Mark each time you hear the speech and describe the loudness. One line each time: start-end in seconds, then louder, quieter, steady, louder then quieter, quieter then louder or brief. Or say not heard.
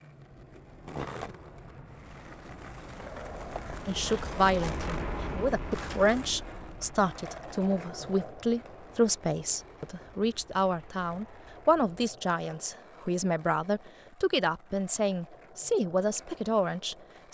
3.9-17.2 steady.